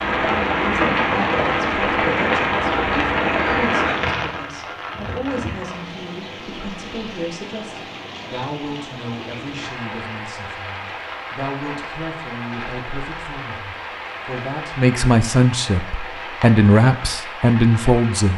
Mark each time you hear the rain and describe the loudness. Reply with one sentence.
The rain can be heard from 0.0 to 18.3 s, getting quieter.